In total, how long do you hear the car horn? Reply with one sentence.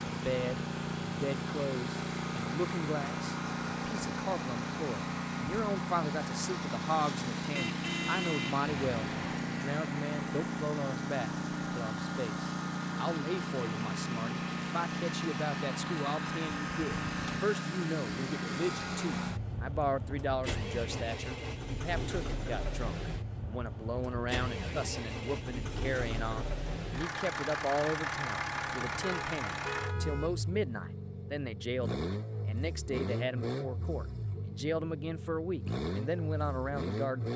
You can hear the car horn for 4 seconds altogether.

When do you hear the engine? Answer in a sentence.
The engine can be heard from 0.0 to 37.3 s.